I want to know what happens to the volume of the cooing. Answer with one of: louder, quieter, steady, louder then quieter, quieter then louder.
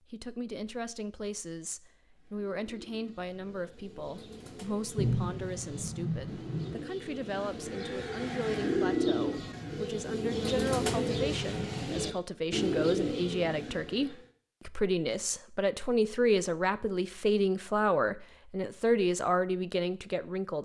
louder.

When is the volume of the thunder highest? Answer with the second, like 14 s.
5 s.